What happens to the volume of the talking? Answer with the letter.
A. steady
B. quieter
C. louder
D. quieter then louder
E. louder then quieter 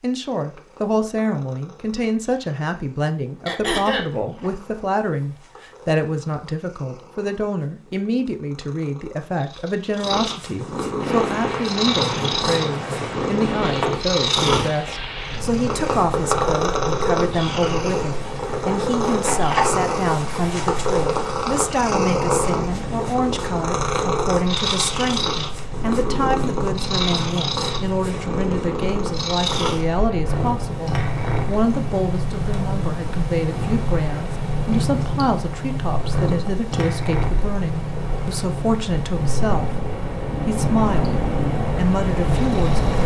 A.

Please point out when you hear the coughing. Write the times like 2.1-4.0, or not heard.
3.5-4.1.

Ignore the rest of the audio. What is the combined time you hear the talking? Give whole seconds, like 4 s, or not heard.
43 s.